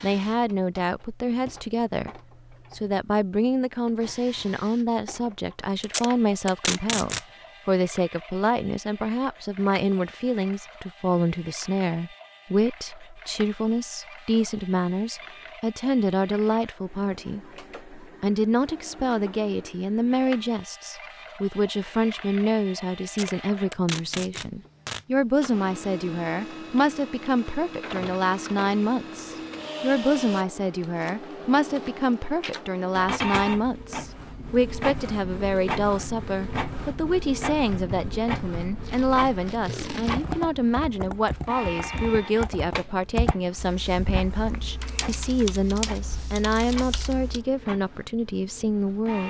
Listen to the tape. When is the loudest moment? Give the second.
7 s.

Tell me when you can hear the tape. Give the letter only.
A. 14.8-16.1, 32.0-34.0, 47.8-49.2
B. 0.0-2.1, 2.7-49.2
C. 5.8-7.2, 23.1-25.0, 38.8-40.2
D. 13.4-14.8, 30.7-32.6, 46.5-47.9
C.